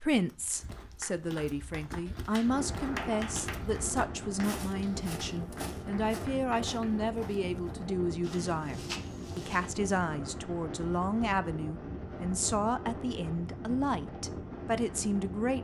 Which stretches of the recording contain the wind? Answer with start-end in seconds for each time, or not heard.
2.4-15.5.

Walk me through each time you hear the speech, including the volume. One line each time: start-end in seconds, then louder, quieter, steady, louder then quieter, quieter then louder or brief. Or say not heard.
0.0-15.5 steady.